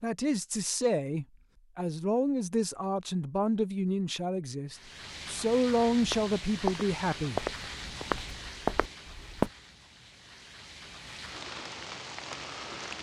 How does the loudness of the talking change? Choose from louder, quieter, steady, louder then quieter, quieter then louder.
steady.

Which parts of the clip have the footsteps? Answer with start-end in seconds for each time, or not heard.
6.0-9.5.